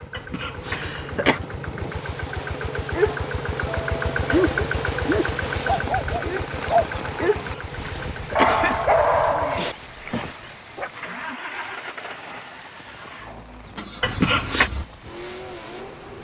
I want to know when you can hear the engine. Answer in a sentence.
You can hear the engine from 0.0 to 16.2 s.